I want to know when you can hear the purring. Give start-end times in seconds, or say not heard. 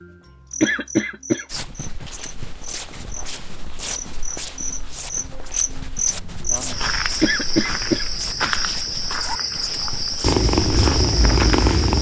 10.2-11.9.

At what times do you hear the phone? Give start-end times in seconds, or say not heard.
not heard.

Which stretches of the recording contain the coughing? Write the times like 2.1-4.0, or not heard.
0.6-2.1, 7.2-8.9.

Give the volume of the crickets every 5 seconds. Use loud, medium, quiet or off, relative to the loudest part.
medium, loud, loud.